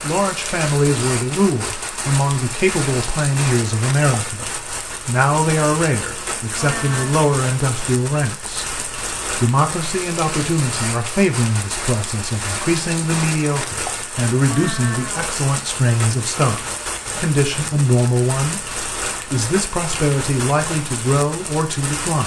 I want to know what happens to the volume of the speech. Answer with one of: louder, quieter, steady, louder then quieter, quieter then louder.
steady.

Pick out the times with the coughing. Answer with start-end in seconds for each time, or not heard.
not heard.